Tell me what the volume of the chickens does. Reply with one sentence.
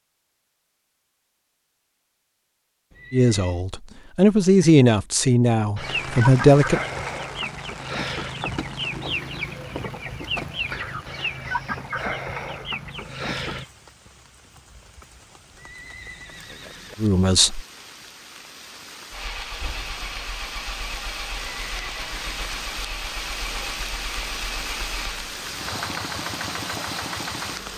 The loudness of the chickens stays about the same.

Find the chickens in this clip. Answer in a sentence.
You can hear the chickens from 5.8 to 13.7 s.